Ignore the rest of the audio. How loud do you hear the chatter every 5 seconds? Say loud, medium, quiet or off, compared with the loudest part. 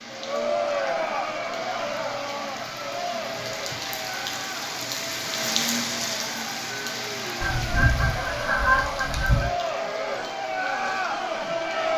loud, medium, loud.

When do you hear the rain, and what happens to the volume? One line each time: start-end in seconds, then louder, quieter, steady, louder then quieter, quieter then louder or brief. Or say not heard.
0.0-11.9 louder then quieter.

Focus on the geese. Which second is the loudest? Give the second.
9 s.